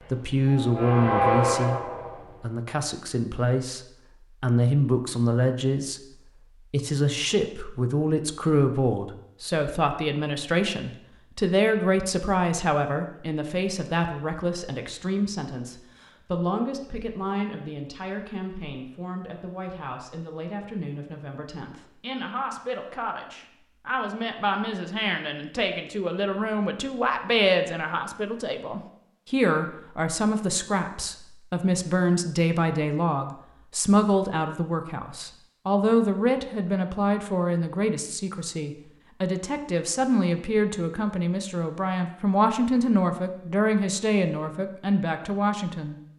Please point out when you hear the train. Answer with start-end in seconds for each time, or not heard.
0.0-2.5.